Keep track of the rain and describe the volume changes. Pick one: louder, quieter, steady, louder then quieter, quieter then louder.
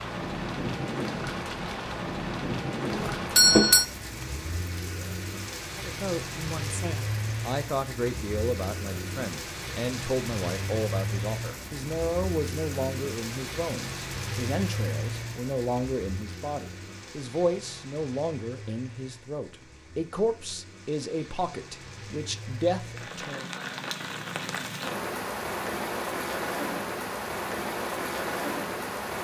quieter then louder.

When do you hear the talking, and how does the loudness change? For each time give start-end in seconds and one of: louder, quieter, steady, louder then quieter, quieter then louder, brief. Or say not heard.
5.8-23.6 steady.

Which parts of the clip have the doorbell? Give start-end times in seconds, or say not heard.
2.9-3.9.